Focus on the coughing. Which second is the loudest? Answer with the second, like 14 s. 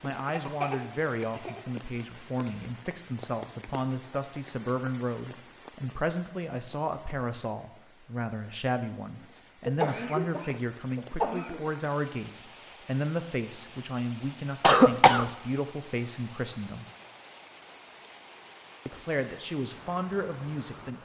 15 s.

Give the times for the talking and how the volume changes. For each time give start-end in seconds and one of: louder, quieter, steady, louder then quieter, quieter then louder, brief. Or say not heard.
0.0-16.9 steady
18.9-21.0 brief.